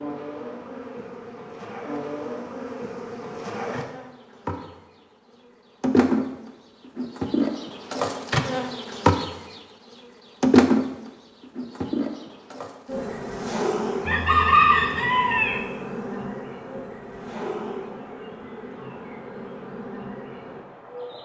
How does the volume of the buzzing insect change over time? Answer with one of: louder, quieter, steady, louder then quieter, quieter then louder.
louder then quieter.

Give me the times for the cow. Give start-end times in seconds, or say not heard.
not heard.